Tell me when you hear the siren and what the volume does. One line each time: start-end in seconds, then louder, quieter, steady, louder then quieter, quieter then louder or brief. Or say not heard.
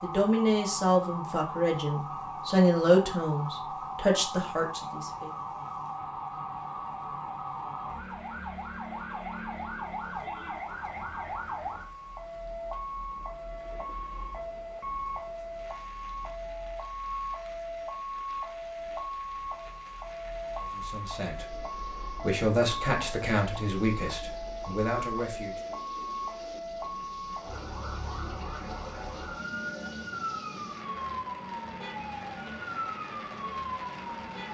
0.0-34.4 steady.